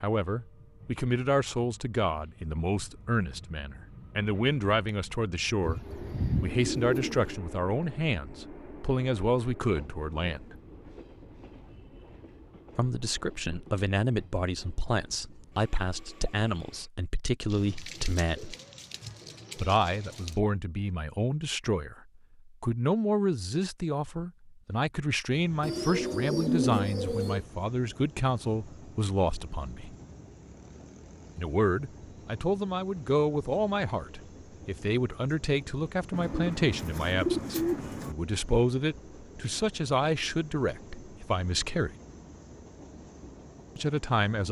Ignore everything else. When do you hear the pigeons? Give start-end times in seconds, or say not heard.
5.6-7.3, 17.5-20.4, 25.6-27.4, 36.1-38.1.